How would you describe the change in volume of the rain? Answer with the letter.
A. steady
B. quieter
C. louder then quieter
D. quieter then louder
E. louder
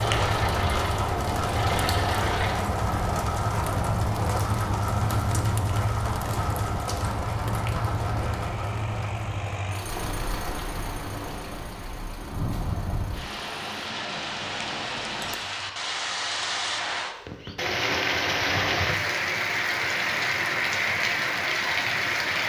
D.